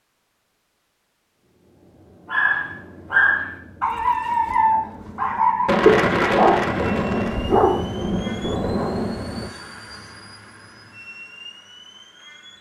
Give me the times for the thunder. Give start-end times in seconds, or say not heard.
5.7-9.5.